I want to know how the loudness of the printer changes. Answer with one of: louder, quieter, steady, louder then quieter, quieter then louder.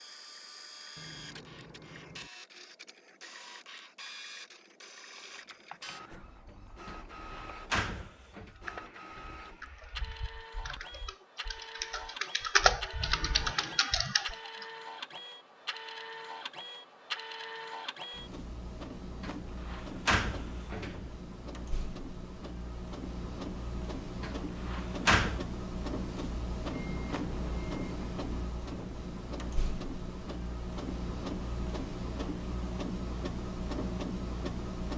louder.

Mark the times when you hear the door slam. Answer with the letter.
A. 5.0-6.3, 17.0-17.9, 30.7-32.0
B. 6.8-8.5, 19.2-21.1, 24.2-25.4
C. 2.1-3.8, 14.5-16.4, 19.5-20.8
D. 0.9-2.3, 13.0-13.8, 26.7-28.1
B.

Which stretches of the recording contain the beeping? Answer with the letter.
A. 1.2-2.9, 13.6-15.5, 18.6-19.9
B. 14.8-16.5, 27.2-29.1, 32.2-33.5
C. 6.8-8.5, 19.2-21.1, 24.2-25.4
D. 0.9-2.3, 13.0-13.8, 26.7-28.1
D.